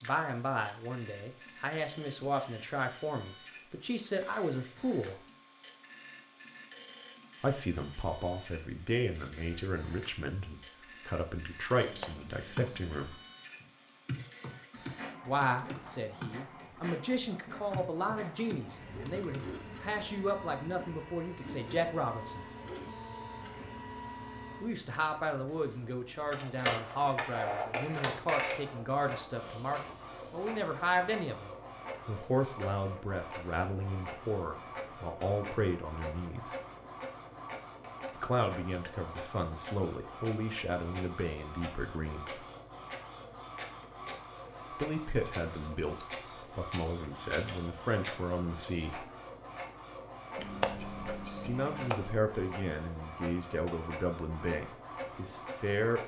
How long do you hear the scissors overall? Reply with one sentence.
You can hear the scissors for 3 seconds altogether.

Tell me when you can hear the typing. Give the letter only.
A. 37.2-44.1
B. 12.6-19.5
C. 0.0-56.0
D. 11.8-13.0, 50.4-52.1
B.